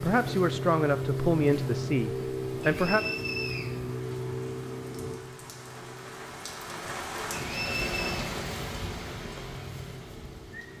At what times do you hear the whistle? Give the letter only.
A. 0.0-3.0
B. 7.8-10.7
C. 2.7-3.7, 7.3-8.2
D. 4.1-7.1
C.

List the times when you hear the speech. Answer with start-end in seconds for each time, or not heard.
0.0-3.0.